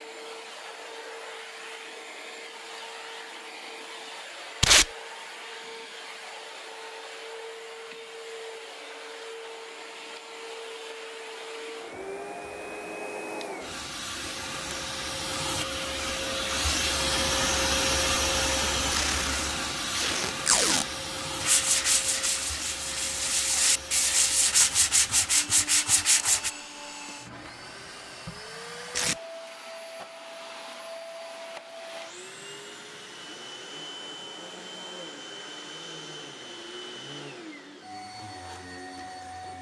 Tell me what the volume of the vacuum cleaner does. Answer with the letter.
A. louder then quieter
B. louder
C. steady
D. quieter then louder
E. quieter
A.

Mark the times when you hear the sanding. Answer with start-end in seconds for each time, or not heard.
21.4-26.5.